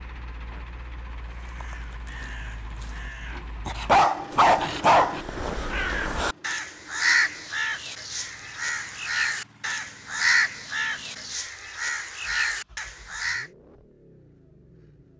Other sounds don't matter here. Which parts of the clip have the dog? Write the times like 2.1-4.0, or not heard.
3.6-5.2.